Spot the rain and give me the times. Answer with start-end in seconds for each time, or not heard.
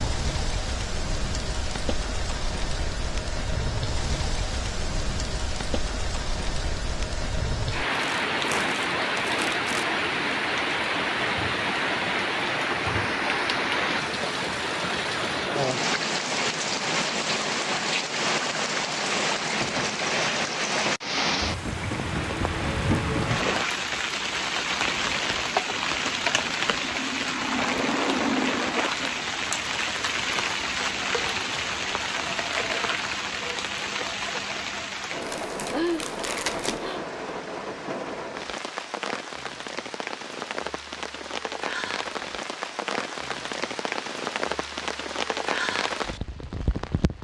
0.0-47.1.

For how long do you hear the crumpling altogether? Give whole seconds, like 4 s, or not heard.
4 s.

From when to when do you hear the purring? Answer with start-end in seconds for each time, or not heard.
not heard.